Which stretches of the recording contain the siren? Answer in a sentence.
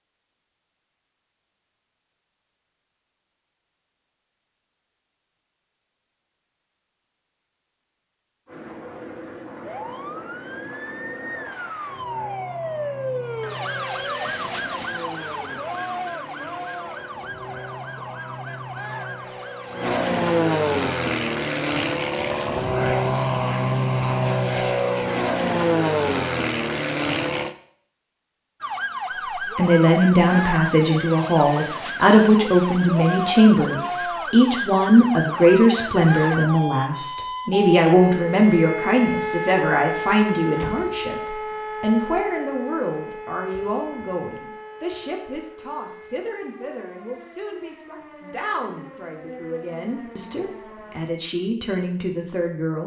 You can hear the siren from 9.7 to 20.0 s and from 28.6 to 51.0 s.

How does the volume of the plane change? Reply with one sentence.
The loudness of the plane goes up.